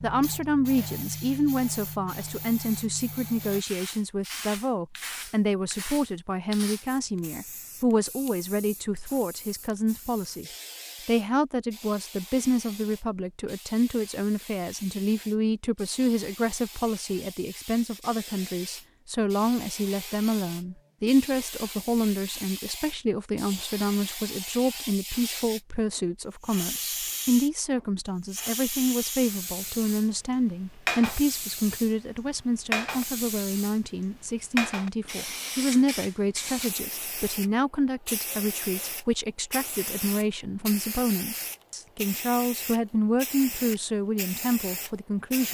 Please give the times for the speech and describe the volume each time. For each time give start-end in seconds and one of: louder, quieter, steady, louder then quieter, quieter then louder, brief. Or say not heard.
0.0-10.4 steady
11.1-45.4 steady.